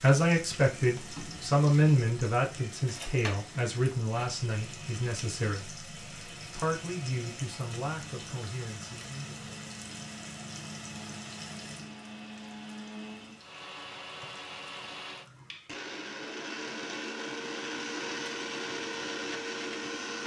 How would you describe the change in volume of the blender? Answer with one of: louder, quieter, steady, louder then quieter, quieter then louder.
louder.